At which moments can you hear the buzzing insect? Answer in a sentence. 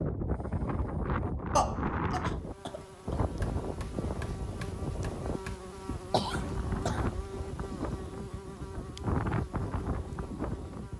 You can hear the buzzing insect from 2.2 to 10.9 s.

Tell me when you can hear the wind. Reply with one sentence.
The wind can be heard from 0.0 to 10.9 s.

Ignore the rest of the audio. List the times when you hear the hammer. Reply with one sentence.
You can hear the hammer from 3.2 to 5.6 s.